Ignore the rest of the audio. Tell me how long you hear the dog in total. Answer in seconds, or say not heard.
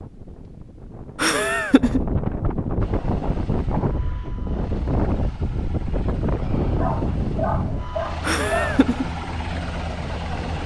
2 s.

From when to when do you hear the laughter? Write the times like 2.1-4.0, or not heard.
1.1-2.0, 8.2-9.1.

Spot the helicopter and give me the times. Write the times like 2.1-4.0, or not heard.
2.8-10.6.